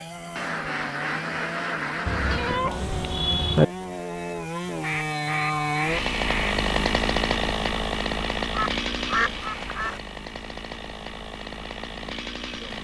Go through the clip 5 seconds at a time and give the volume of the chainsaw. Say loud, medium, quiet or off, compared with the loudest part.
medium, loud, medium.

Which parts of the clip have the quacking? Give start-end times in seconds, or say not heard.
0.3-2.6, 4.8-6.5, 8.5-10.0.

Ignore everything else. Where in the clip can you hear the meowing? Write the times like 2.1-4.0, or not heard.
2.0-3.6.